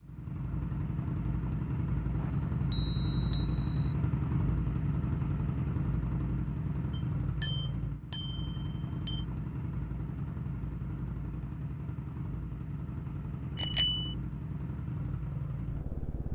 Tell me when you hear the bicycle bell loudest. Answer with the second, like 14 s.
14 s.